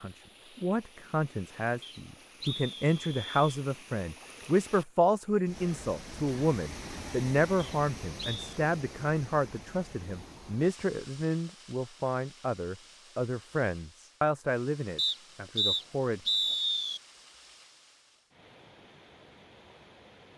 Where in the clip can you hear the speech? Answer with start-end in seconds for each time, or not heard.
0.0-16.2.